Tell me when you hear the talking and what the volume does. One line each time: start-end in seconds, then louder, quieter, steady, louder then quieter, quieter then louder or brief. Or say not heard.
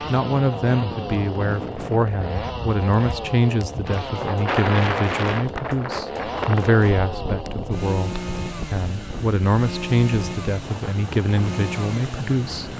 0.1-12.7 steady.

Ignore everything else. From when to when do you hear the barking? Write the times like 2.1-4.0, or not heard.
not heard.